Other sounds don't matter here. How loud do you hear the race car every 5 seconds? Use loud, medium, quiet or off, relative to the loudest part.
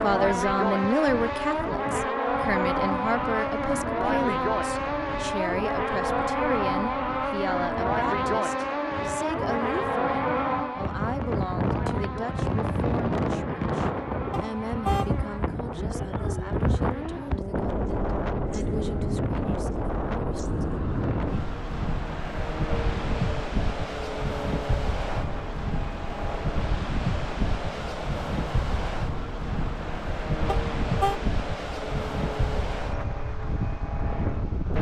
loud, loud, medium, medium, medium, quiet, medium.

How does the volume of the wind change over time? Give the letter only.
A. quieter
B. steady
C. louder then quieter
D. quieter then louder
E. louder
E.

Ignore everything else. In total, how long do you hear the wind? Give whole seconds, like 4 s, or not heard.
35 s.